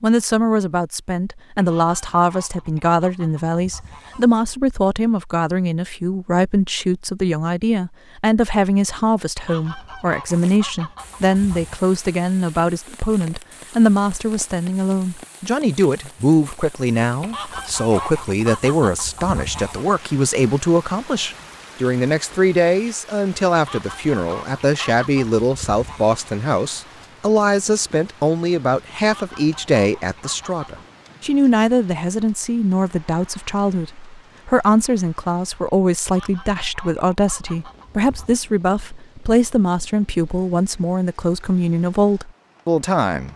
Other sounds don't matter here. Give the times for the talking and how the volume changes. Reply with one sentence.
You can hear the talking from 0.0 to 43.3 s, at a steady volume.